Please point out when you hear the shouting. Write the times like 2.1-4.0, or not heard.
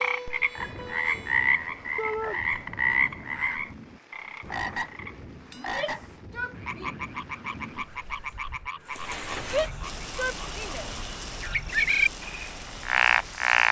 1.9-2.4, 5.5-7.0, 9.4-10.9.